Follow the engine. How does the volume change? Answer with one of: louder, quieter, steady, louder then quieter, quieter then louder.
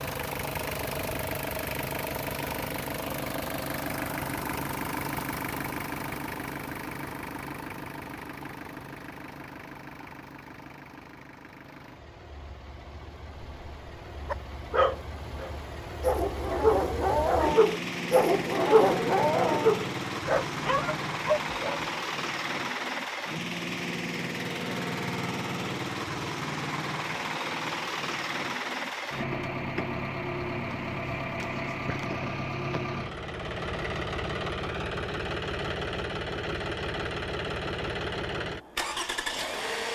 quieter then louder.